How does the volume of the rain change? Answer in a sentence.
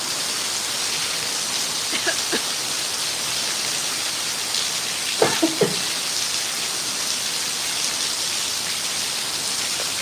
The volume of the rain stays about the same.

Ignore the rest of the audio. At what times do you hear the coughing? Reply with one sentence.
You can hear the coughing from 1.9 to 2.5 s and from 5.2 to 6.0 s.